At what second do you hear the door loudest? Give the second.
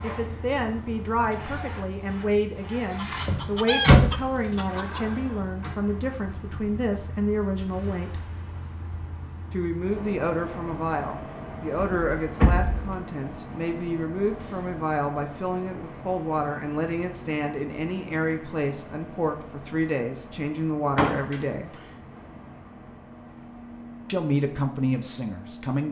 4 s.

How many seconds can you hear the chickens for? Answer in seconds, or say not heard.
2 s.